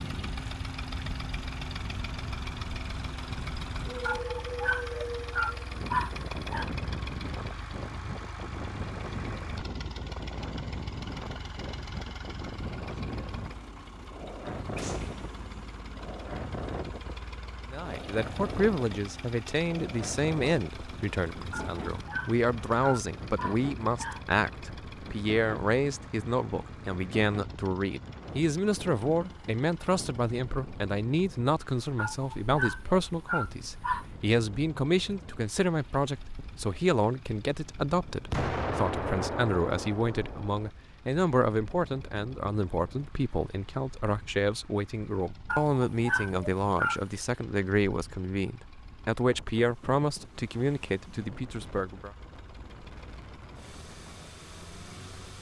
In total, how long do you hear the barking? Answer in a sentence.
The barking can be heard for 9 seconds in total.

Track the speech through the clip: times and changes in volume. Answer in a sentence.
You can hear the speech from 17.7 to 52.1 s, at a steady volume.